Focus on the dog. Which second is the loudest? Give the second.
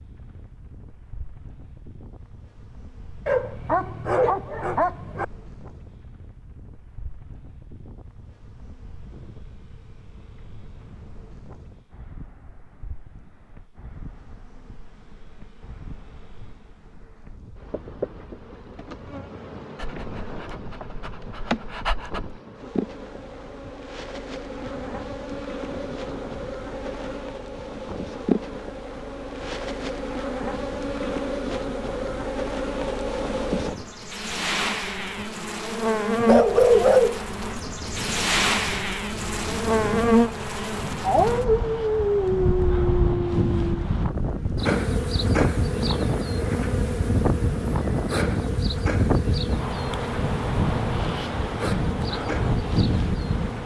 37 s.